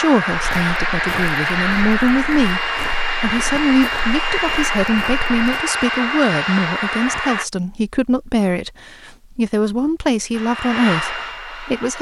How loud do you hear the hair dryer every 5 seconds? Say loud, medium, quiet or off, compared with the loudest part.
loud, loud, medium.